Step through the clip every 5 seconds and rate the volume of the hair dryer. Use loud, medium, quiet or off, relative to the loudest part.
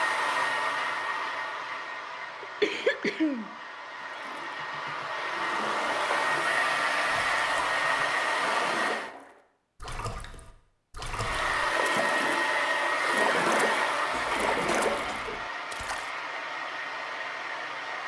medium, loud, loud, medium.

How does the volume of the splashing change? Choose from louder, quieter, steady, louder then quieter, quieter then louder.
louder.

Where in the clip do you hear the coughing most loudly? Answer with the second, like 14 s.
3 s.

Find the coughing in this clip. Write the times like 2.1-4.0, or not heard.
2.4-3.5, 14.1-15.4.